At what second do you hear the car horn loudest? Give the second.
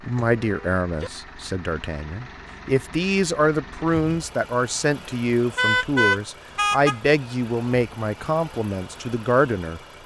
6 s.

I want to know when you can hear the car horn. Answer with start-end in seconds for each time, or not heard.
0.1-1.1, 5.5-7.0.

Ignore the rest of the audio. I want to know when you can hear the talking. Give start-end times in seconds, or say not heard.
0.0-10.0.